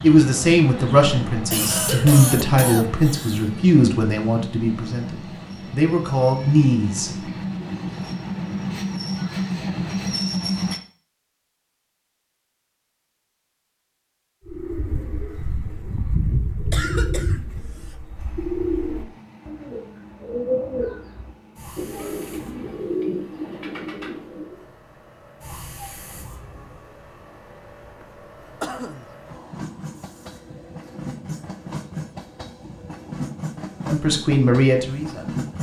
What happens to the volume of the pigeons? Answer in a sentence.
The loudness of the pigeons stays about the same.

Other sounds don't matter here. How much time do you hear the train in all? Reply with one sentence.
You can hear the train for 28 seconds altogether.